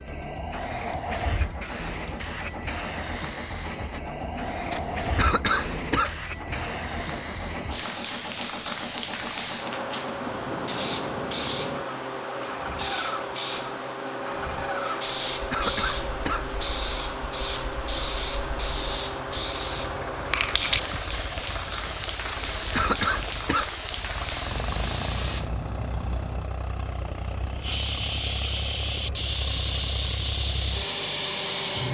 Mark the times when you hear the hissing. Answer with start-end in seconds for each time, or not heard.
0.0-31.8.